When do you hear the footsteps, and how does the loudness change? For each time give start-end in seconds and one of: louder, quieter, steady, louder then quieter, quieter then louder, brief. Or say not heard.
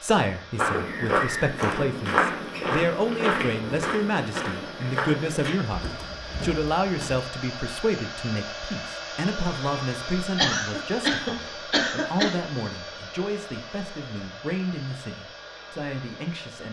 0.6-7.2 quieter.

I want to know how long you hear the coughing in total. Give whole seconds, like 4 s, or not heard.
2 s.